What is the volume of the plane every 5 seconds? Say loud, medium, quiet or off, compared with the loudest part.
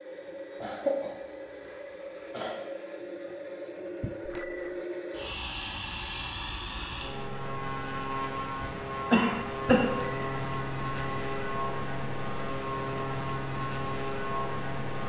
medium, loud, loud.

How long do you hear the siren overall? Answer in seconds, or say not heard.
not heard.